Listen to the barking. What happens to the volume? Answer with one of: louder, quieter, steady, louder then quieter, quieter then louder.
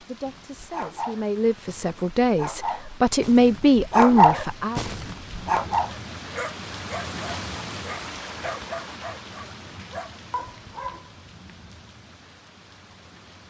louder then quieter.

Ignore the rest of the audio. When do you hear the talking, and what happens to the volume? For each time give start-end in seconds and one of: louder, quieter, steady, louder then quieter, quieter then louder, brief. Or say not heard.
0.0-4.8 louder.